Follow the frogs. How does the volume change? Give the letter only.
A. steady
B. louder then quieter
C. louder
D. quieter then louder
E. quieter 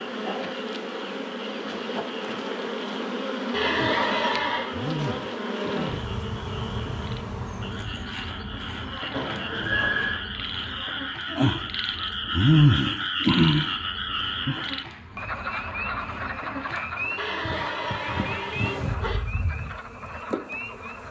B.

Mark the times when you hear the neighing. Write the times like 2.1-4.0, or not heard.
3.5-4.8, 9.1-10.2, 17.1-19.2.